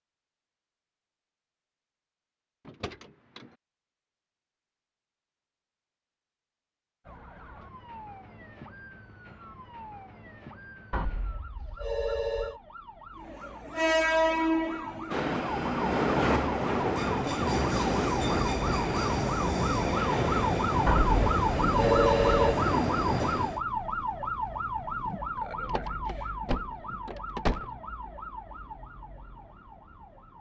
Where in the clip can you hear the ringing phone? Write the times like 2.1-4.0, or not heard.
10.9-12.6, 20.9-22.6.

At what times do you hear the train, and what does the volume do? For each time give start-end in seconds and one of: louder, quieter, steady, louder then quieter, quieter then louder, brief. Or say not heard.
13.2-23.6 steady.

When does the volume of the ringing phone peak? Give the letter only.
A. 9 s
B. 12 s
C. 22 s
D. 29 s
C.